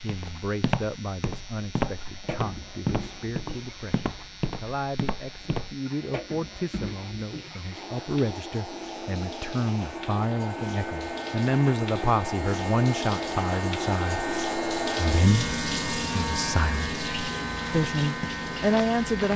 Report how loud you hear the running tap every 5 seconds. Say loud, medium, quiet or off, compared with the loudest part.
quiet, medium, loud, loud.